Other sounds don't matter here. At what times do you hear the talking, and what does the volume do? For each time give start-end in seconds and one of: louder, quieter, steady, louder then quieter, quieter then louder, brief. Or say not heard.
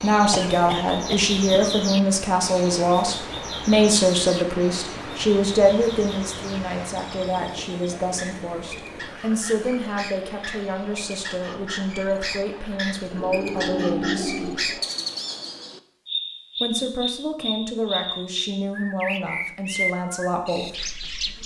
0.0-14.4 quieter
16.6-20.9 steady.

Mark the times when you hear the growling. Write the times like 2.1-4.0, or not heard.
13.1-14.8.